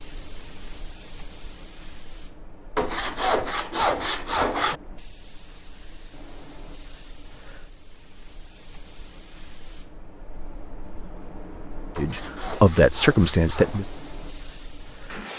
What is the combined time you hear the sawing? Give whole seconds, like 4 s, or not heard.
4 s.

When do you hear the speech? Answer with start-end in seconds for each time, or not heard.
11.9-13.8.